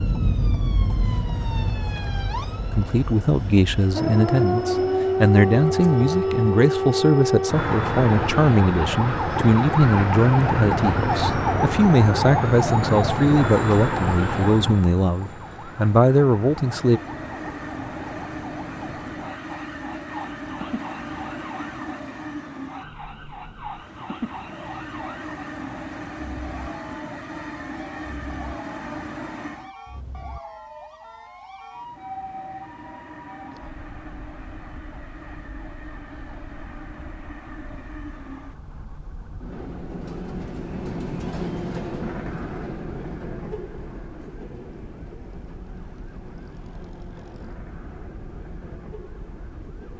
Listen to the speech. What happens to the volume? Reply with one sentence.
The loudness of the speech stays about the same.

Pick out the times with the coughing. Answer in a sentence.
You can't hear the coughing here.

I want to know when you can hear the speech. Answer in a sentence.
You can hear the speech from 2.7 to 17.0 s.